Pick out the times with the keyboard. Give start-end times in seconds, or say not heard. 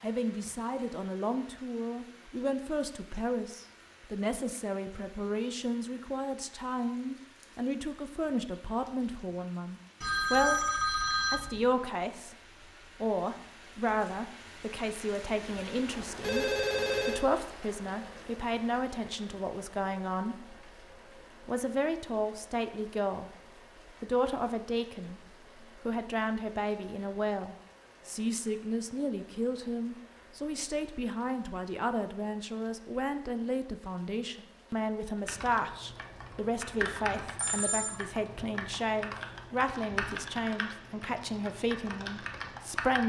35.2-43.0.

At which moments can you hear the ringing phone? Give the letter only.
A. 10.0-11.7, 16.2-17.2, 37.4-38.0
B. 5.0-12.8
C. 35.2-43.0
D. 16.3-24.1
A.